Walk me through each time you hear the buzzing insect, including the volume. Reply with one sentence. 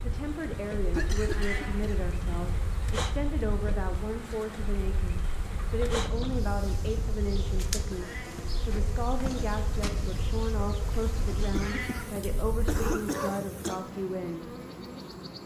The buzzing insect can be heard from 0.0 to 15.4 s, at a steady volume.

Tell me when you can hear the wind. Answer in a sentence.
You can hear the wind from 0.0 to 12.8 s.